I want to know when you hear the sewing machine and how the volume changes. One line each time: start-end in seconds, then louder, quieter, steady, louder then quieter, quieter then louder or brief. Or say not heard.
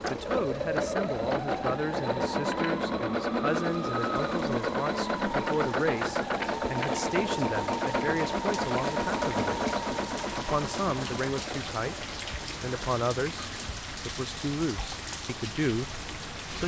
0.0-16.4 quieter.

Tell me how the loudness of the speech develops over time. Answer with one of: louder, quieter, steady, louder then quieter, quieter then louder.
steady.